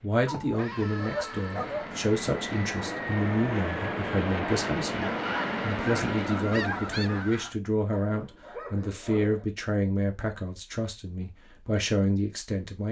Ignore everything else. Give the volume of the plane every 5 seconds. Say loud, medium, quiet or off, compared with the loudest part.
loud, loud, off.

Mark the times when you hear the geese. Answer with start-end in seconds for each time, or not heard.
5.0-7.5.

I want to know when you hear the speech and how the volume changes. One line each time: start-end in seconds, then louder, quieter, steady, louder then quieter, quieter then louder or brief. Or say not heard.
0.0-12.8 steady.